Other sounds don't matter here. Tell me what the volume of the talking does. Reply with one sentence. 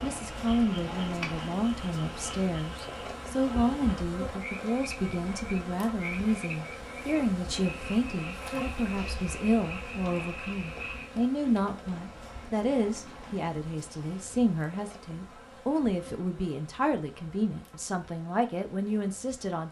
The loudness of the talking stays about the same.